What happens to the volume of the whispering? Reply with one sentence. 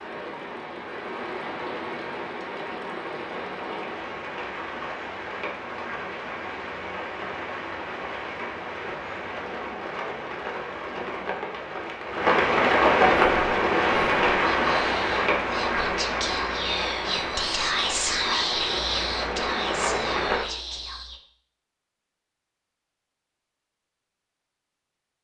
The loudness of the whispering goes up, then down.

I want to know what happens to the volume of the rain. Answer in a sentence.
The loudness of the rain goes up, then down.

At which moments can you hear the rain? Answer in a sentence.
The rain can be heard from 0.0 to 20.4 s.